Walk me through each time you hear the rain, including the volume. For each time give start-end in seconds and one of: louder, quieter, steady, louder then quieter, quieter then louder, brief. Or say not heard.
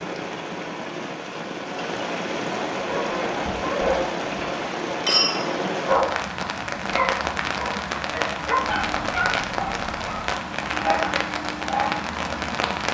0.0-12.8 steady.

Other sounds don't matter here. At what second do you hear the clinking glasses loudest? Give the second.
5 s.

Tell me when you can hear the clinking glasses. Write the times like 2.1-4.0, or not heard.
3.8-5.5.